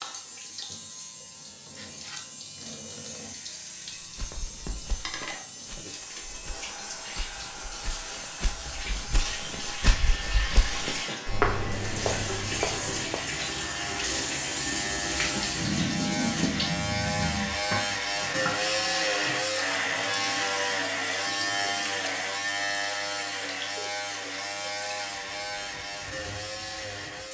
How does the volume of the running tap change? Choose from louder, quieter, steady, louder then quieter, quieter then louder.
louder then quieter.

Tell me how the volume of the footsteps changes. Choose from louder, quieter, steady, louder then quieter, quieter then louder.
louder.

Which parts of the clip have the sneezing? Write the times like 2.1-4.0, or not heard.
not heard.